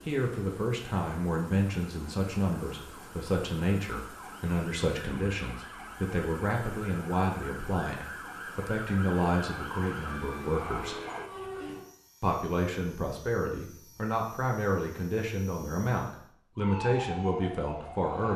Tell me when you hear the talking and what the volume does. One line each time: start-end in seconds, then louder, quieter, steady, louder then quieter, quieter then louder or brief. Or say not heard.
0.1-10.9 steady
12.2-18.3 steady.